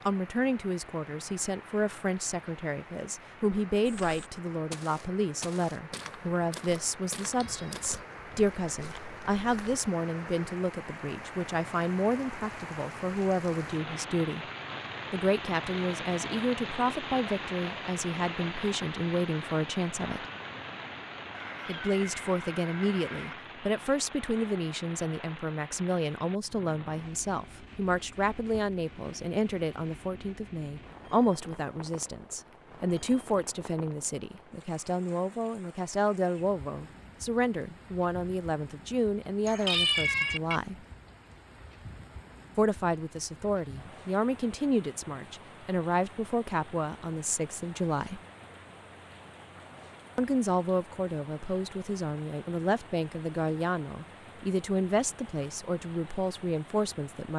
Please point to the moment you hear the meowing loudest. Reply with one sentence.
The loudest moment of the meowing is at 40 seconds.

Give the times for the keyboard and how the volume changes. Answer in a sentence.
The keyboard can't be heard in this clip.